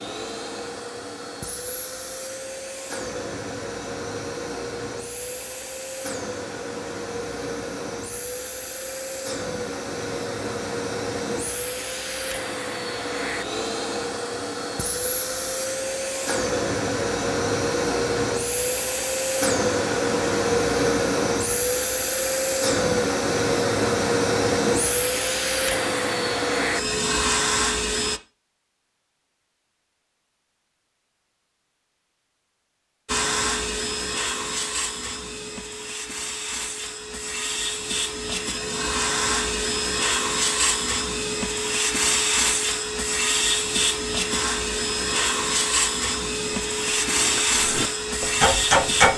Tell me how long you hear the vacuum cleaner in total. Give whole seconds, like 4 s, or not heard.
44 s.